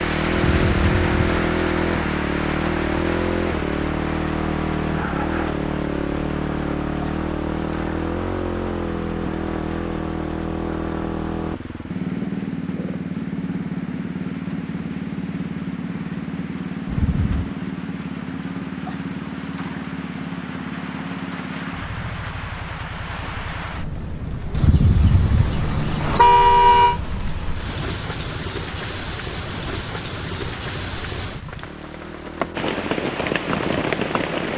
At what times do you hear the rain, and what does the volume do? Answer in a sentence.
You can hear the rain from 0.0 to 34.5 s, getting quieter then louder.